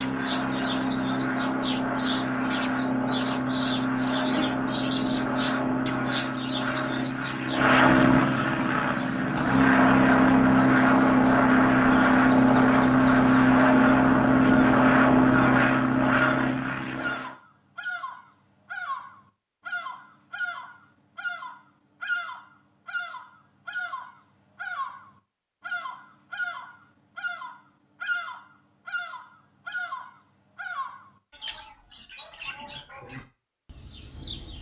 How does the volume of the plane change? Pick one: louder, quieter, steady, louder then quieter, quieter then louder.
louder.